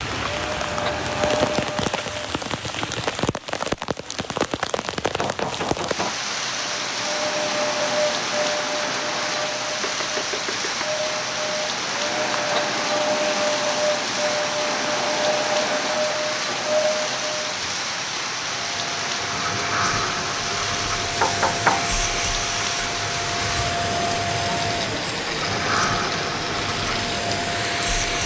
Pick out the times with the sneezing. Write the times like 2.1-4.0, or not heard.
not heard.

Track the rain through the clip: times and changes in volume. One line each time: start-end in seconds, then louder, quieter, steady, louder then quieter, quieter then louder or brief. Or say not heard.
0.0-28.2 steady.